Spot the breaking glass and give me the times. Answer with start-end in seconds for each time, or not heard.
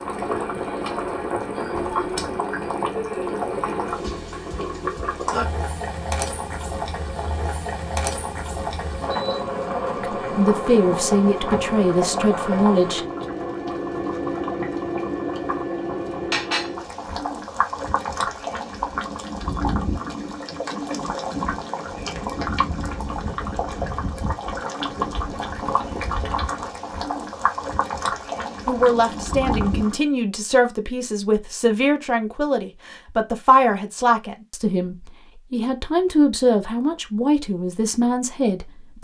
not heard.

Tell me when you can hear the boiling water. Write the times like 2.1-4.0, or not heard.
0.0-30.1.